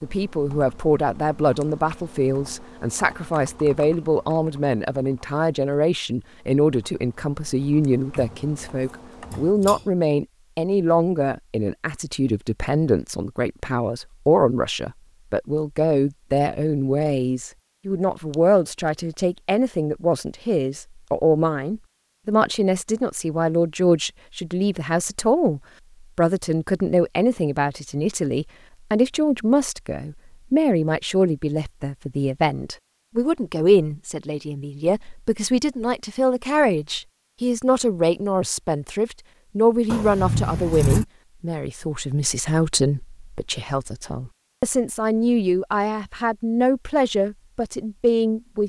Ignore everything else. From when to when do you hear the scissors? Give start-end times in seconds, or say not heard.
8.2-9.8, 18.3-18.9, 39.9-41.0.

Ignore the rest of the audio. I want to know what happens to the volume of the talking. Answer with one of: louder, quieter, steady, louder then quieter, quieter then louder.
steady.